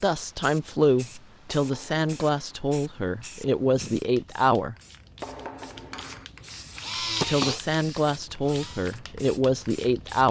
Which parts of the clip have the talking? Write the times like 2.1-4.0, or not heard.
0.0-4.8, 7.2-10.2.